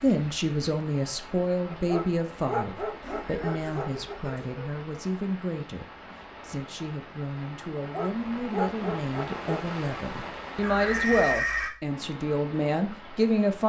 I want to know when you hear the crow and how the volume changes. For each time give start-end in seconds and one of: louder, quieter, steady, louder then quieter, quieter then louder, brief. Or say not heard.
not heard.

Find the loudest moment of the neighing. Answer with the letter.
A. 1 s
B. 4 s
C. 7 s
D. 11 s
D.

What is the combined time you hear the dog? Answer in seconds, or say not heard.
4 s.